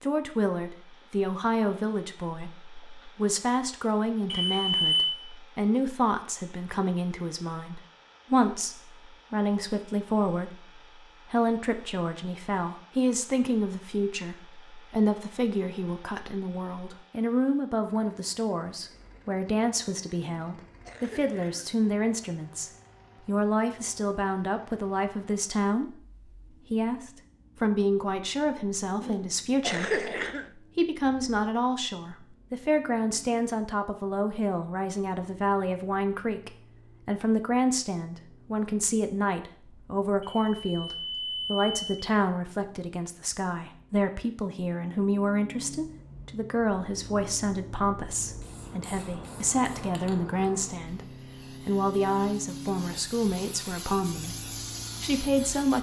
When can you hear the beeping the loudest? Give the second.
5 s.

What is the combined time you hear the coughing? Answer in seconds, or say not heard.
3 s.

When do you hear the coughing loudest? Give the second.
30 s.